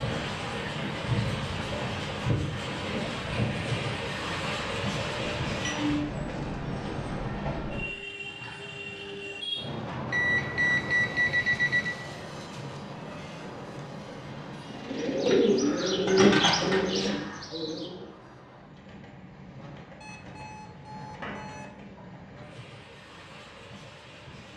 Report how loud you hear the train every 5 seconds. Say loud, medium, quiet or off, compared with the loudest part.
loud, loud, medium, quiet, quiet.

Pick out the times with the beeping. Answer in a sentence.
The beeping can be heard from 5.0 to 5.8 s, from 10.1 to 11.9 s and from 20.0 to 21.7 s.